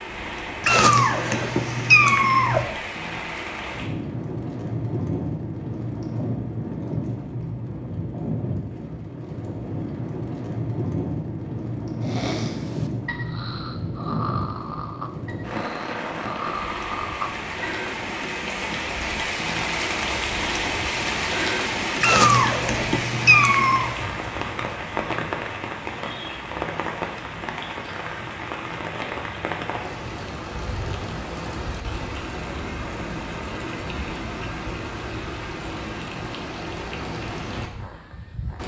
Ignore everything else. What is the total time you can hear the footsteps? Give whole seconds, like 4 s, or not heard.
not heard.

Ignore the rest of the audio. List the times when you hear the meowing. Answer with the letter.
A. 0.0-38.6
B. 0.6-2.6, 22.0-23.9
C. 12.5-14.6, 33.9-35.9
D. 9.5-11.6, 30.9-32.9
B.